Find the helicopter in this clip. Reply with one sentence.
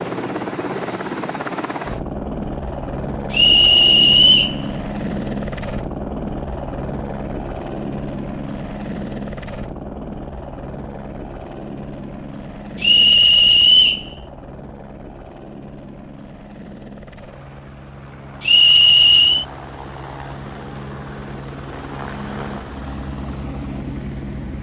You can hear the helicopter from 0.0 to 24.5 s.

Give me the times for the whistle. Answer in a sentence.
The whistle can be heard from 3.3 to 4.5 s, from 12.8 to 14.1 s and from 18.4 to 19.4 s.